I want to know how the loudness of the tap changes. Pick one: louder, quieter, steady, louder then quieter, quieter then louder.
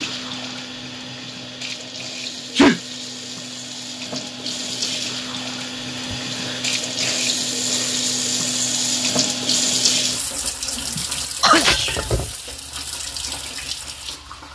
louder then quieter.